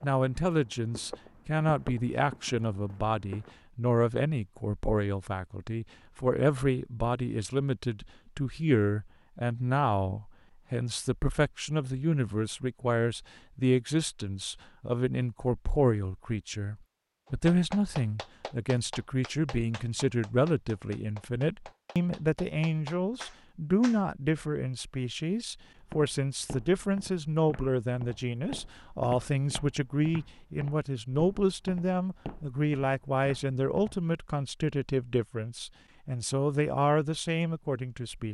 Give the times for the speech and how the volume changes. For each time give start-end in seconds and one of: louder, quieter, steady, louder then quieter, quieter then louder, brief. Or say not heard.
0.0-38.2 steady.